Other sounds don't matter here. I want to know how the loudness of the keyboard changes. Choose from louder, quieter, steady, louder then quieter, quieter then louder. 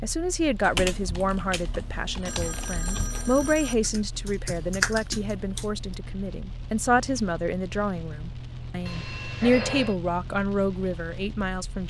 louder.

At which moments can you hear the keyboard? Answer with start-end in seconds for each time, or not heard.
0.6-5.8.